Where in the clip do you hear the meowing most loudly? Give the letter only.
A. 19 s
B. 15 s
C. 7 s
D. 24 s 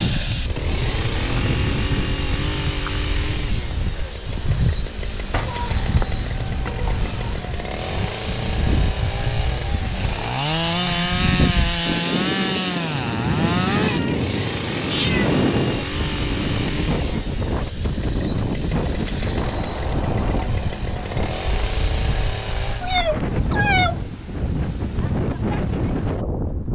D.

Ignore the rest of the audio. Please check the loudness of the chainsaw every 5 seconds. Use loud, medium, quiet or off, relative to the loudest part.
medium, medium, loud, medium, medium, off.